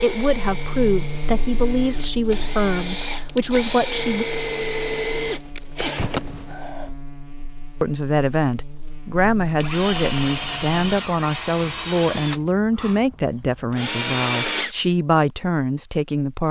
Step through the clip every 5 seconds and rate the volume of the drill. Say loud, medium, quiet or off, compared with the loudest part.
loud, loud, loud, off.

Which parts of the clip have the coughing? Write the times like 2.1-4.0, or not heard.
not heard.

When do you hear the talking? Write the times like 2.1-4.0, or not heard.
0.0-4.2, 7.8-16.4.